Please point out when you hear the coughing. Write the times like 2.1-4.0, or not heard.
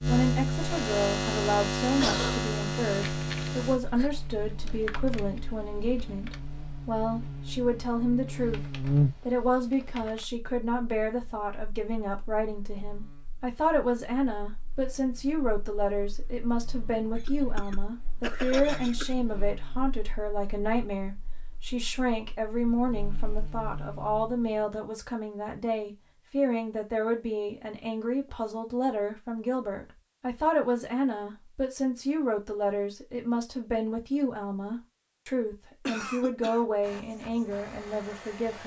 2.0-2.5, 17.1-19.1, 35.9-36.6.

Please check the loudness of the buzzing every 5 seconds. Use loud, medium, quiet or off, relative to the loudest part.
loud, loud, quiet, quiet, quiet, off, off, off.